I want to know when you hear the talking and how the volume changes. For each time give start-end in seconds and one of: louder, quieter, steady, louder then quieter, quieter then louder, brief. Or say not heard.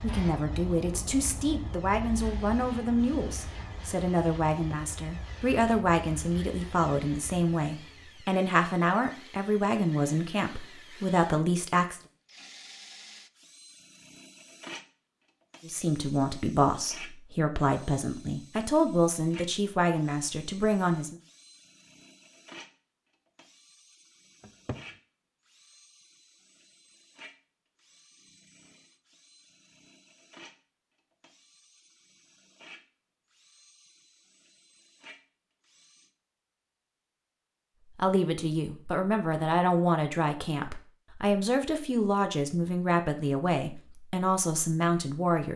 0.0-12.0 steady
15.7-21.1 steady
38.0-45.5 steady.